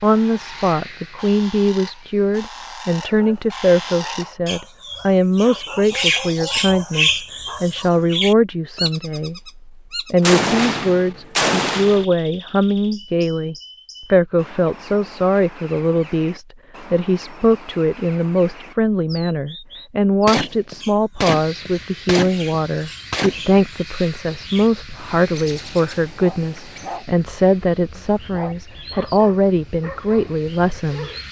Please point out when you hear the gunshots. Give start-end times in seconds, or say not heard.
10.2-12.1, 20.2-23.6.